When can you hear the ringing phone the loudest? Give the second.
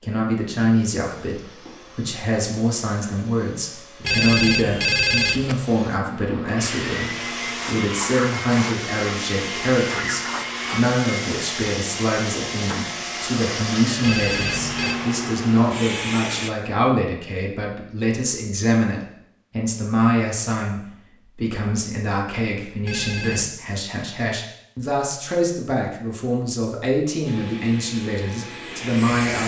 5 s.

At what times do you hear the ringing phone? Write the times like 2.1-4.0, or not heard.
4.0-5.6, 14.0-14.9, 22.9-23.6.